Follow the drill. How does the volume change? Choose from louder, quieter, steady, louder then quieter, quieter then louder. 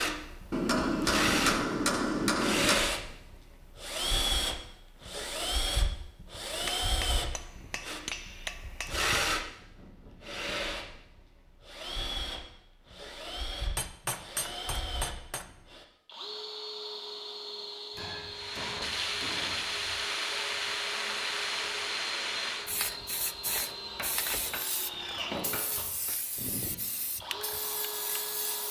quieter.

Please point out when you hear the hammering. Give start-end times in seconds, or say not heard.
0.5-2.9, 6.7-9.1, 13.8-15.4, 17.9-19.9, 23.9-26.1.